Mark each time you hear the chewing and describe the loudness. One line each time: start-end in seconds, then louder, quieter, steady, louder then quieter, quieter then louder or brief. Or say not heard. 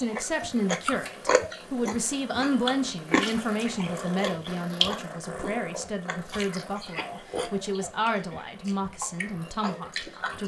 0.0-10.4 quieter.